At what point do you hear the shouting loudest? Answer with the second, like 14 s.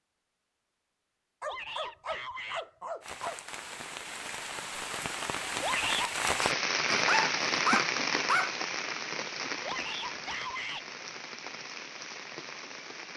6 s.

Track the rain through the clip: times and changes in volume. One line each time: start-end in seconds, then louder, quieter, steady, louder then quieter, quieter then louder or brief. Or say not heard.
3.0-13.1 louder then quieter.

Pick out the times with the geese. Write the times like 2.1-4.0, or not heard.
not heard.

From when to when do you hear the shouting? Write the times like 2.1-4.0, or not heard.
1.4-2.6, 5.6-6.2, 9.6-10.8.